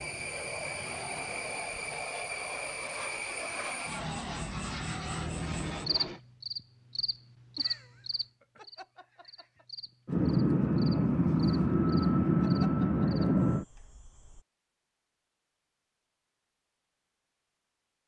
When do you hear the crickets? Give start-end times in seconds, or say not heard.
0.0-14.4.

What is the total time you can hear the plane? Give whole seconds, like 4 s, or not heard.
10 s.